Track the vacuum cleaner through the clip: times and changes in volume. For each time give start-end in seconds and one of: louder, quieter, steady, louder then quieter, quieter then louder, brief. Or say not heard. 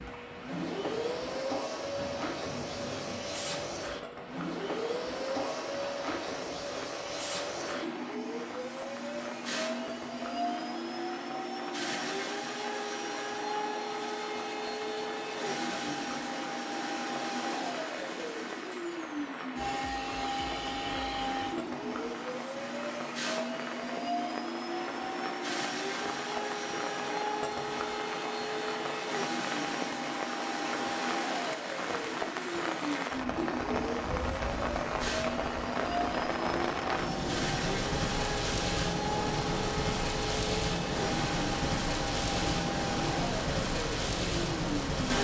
0.0-45.1 steady.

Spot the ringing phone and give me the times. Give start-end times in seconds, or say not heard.
not heard.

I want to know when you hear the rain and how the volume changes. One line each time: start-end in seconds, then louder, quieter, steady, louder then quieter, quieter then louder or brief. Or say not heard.
0.0-45.1 louder.